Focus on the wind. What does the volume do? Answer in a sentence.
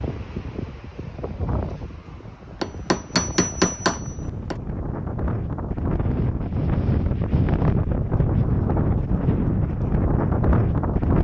The volume of the wind goes up.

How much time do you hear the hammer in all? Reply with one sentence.
The hammer can be heard for 2 seconds in total.